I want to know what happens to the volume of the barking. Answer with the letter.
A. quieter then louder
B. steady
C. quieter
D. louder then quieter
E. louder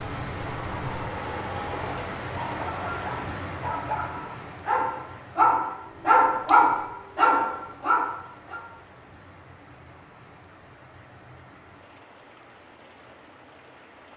E.